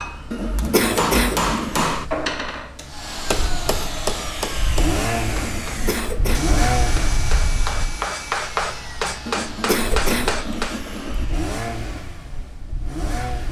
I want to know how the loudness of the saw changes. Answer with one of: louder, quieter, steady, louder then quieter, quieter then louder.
quieter.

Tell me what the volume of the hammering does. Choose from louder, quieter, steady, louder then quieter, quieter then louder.
quieter then louder.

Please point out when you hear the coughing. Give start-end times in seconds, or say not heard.
0.3-1.9, 5.4-6.5, 9.2-11.2.